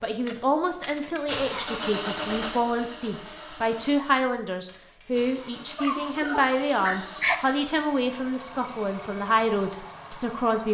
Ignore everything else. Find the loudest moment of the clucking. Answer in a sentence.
The loudest moment of the clucking is at 7 seconds.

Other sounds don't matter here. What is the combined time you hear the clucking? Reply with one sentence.
The clucking can be heard for 2 seconds in total.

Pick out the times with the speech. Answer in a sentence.
You can hear the speech from 0.0 to 10.6 s.